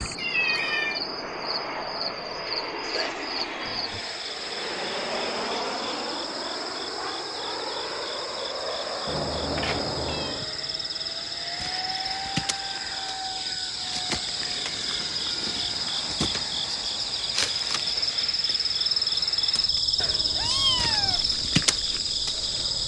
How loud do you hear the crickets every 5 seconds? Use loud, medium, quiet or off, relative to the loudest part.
medium, medium, medium, loud, loud.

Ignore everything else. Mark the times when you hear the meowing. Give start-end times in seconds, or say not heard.
0.1-1.0, 9.1-10.4, 19.9-21.2.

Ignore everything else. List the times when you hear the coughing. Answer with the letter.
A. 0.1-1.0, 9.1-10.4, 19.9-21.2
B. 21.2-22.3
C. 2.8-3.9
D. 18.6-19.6
C.